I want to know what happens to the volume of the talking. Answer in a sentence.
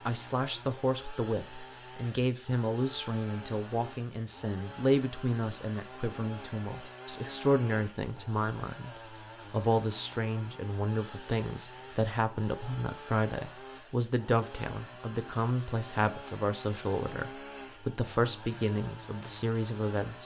The loudness of the talking stays about the same.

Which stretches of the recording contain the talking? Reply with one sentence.
You can hear the talking from 0.1 to 20.2 s.